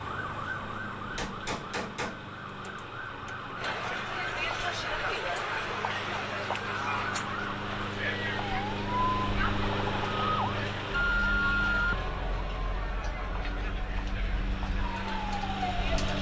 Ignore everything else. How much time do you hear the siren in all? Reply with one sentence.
The siren can be heard for 16 seconds in total.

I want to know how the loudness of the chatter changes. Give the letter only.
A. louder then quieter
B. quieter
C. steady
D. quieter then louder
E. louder
B.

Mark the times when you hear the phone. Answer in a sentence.
The phone can be heard from 10.9 to 12.1 s.